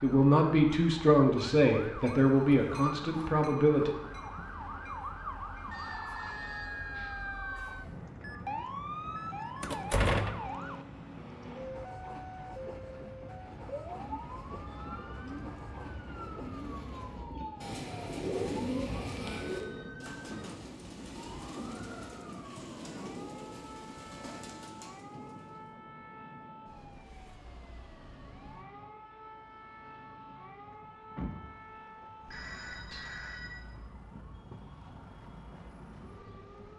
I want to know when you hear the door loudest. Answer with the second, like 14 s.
10 s.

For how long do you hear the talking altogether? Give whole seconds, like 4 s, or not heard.
4 s.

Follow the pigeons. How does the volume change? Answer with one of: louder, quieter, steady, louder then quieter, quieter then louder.
louder then quieter.